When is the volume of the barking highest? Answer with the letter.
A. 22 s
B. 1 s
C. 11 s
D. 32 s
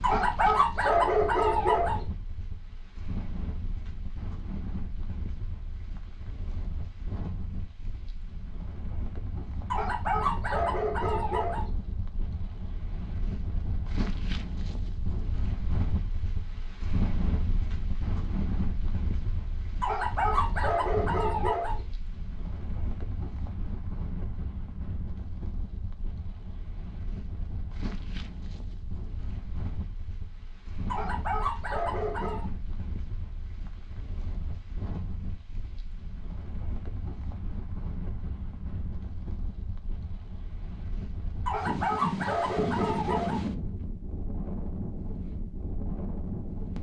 B.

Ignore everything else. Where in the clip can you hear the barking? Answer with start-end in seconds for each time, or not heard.
0.0-2.0, 9.7-11.7, 19.8-21.8, 30.9-32.5, 41.5-43.5.